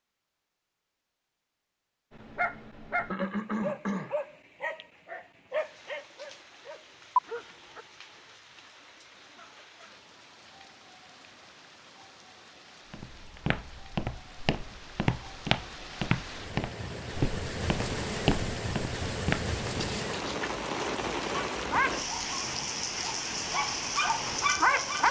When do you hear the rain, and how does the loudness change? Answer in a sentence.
The rain can be heard from 5.5 to 25.0 s, getting louder.